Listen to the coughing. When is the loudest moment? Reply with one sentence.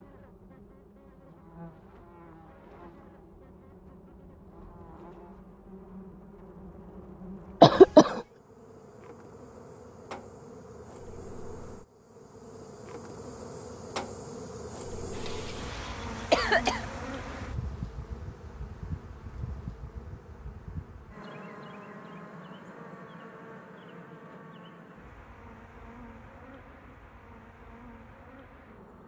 The loudest moment of the coughing is at 8 seconds.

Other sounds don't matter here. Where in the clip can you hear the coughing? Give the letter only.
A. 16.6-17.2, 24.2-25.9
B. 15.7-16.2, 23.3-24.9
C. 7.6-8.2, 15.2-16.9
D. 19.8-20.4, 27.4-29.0
C.